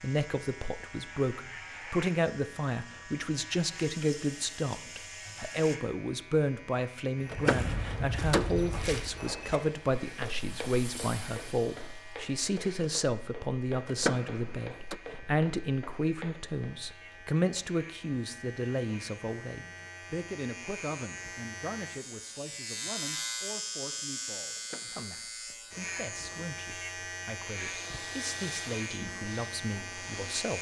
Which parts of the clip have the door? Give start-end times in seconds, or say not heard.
7.3-8.5, 13.8-14.9, 24.6-25.1.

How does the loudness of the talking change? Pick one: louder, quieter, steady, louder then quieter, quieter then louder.
quieter.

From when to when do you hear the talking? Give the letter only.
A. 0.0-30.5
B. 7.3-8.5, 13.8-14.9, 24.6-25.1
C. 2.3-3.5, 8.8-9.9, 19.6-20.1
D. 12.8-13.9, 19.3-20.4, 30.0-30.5
A.